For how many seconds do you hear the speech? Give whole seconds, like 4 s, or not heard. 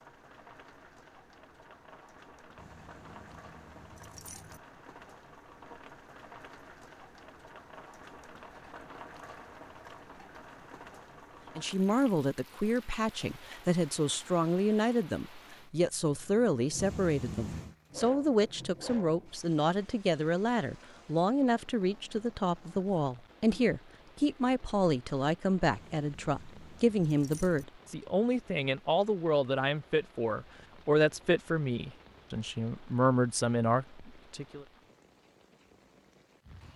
23 s.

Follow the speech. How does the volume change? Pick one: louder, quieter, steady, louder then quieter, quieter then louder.
steady.